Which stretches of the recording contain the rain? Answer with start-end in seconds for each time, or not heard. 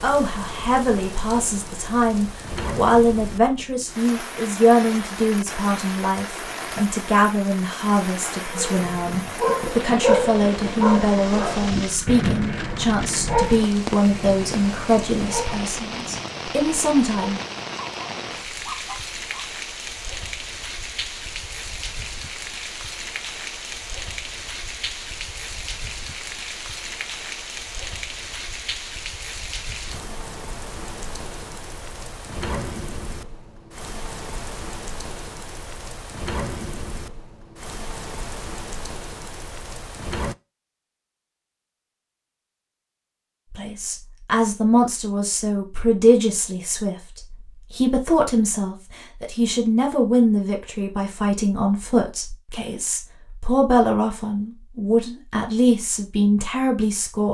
0.0-40.4.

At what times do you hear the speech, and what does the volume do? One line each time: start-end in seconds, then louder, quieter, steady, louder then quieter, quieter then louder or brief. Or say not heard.
0.0-17.4 steady
43.5-57.2 steady.